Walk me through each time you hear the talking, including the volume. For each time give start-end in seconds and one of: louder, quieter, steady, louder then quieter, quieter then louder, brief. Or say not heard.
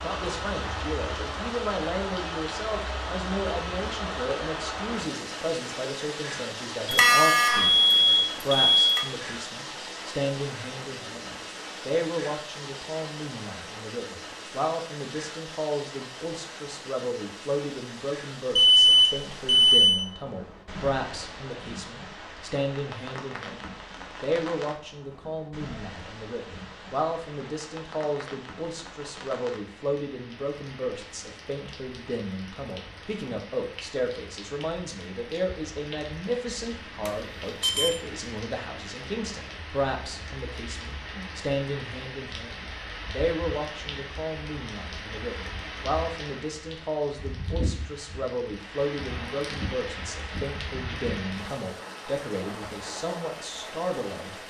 0.0-54.4 steady.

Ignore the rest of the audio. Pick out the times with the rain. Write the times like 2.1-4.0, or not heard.
0.0-54.4.